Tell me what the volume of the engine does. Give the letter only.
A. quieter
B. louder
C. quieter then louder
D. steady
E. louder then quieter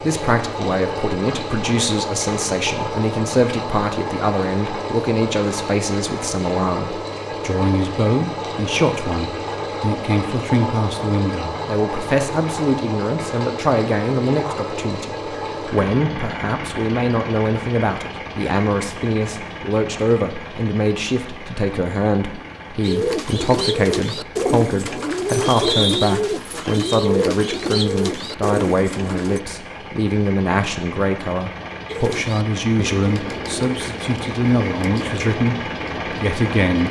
C.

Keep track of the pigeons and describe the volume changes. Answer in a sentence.
The volume of the pigeons goes down.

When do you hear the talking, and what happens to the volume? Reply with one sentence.
You can hear the talking from 0.0 to 36.8 s, at a steady volume.